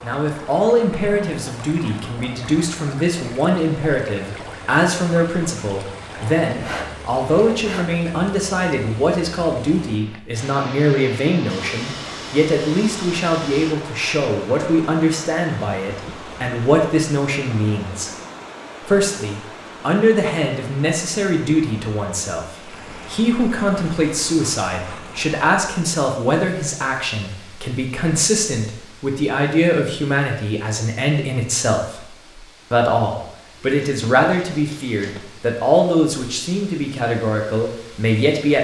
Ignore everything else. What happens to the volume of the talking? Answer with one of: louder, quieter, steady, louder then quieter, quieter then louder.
steady.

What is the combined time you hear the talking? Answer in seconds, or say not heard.
37 s.